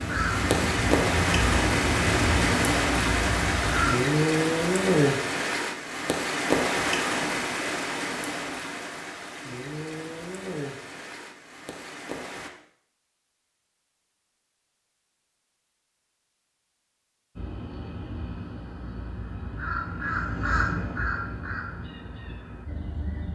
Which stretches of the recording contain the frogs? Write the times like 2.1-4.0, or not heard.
not heard.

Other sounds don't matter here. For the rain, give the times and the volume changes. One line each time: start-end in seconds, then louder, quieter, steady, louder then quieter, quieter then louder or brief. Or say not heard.
0.0-12.5 quieter.